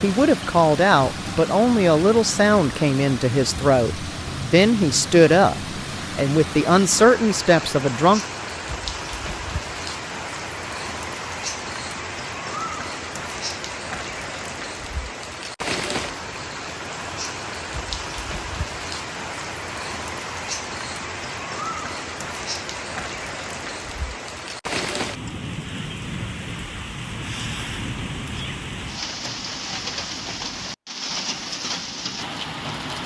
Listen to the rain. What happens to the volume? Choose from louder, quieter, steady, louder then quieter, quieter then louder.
steady.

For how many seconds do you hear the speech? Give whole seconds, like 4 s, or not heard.
8 s.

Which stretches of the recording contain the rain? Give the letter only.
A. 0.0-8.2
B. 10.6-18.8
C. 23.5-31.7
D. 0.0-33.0
D.